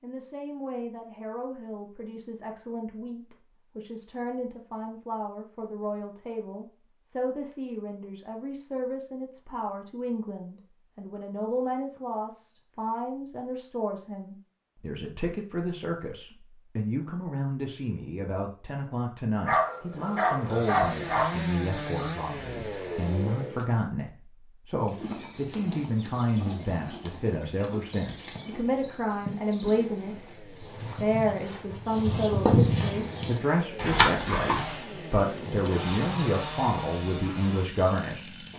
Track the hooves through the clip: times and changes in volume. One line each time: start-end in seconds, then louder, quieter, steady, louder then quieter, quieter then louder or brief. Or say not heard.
24.8-34.8 louder.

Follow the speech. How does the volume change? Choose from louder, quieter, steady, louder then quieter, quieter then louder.
louder.